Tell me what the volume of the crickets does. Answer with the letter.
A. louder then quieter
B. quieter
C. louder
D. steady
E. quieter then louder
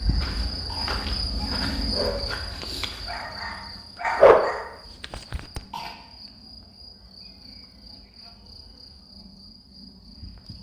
B.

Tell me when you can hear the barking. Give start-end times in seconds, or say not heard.
0.0-5.6.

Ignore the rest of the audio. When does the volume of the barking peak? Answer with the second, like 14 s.
4 s.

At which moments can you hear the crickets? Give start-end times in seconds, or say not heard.
0.0-10.5.